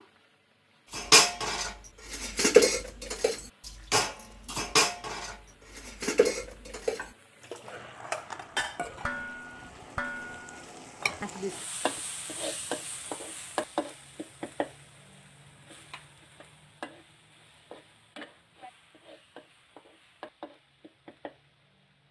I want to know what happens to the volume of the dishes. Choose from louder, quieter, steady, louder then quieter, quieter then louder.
quieter.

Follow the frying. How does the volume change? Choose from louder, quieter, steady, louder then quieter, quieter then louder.
louder then quieter.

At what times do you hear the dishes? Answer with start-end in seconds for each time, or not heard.
0.9-11.3.